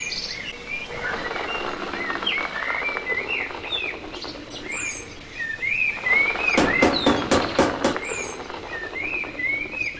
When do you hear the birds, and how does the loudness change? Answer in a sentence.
You can hear the birds from 0.0 to 9.9 s, getting louder then quieter.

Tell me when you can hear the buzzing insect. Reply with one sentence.
You can't hear the buzzing insect here.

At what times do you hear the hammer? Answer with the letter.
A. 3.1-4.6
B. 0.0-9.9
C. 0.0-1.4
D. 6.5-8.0
D.